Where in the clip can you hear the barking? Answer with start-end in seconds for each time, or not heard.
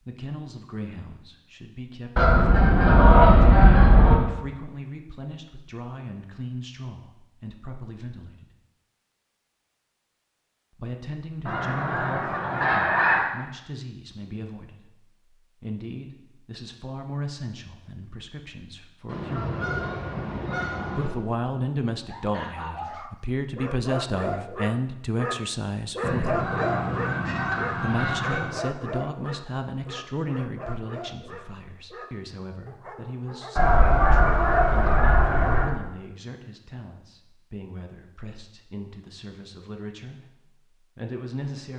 22.1-33.8.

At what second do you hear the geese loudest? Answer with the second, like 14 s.
3 s.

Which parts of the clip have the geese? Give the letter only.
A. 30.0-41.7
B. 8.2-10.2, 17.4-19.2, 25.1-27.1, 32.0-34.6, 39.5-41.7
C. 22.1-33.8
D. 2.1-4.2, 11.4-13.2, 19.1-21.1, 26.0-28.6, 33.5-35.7
D.